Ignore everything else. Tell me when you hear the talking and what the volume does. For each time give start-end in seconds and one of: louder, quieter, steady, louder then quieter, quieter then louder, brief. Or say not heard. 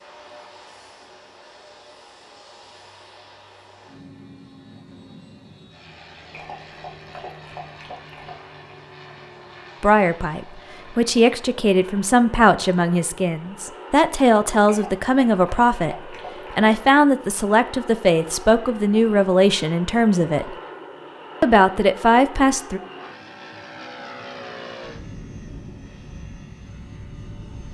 9.8-20.6 steady
21.4-22.8 brief.